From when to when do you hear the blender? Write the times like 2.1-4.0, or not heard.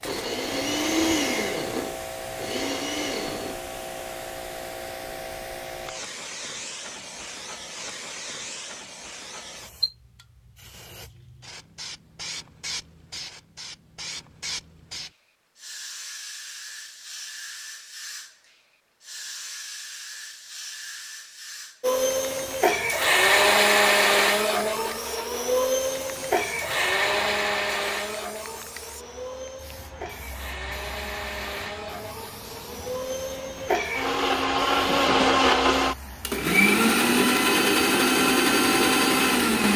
0.0-3.5, 21.8-39.7.